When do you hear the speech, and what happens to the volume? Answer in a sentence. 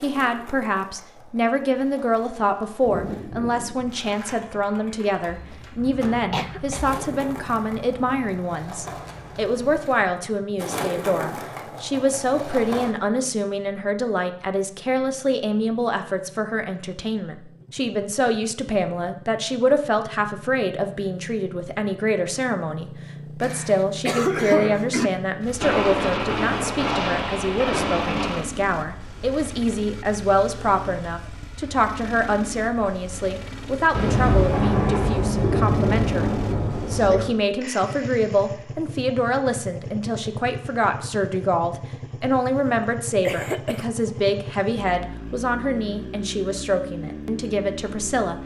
The speech can be heard from 0.0 to 48.4 s, at a steady volume.